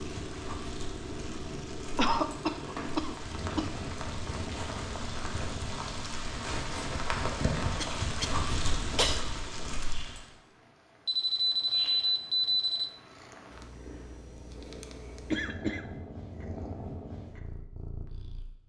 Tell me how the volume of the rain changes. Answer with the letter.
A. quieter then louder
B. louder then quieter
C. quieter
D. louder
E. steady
D.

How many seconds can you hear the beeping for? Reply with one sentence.
The beeping can be heard for 2 seconds in total.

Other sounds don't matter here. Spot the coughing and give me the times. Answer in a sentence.
The coughing can be heard from 1.9 to 3.7 s, from 7.8 to 9.2 s and from 15.3 to 15.8 s.